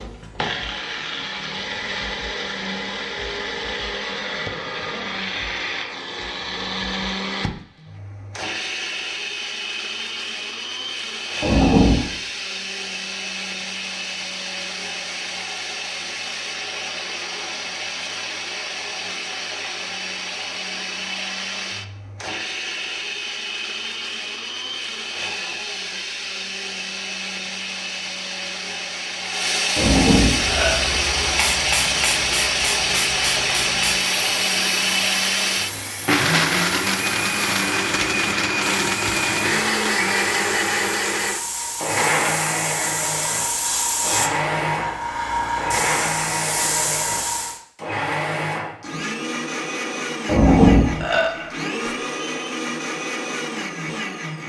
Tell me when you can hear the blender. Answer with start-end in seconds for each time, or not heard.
0.0-54.4.